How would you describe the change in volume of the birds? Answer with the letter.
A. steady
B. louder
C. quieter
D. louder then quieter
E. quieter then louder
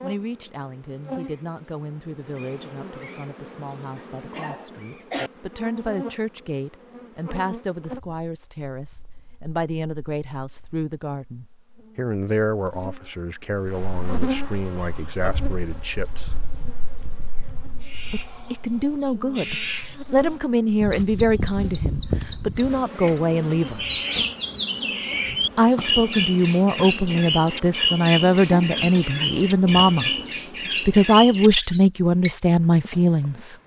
B.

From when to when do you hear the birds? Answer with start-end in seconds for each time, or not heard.
14.7-33.6.